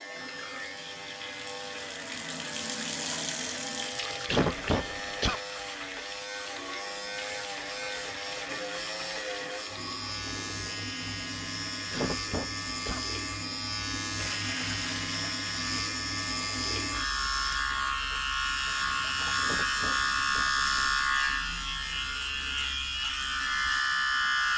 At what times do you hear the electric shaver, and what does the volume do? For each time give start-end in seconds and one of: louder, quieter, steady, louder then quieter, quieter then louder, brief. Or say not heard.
0.0-24.5 louder.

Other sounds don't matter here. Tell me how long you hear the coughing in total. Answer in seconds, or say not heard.
3 s.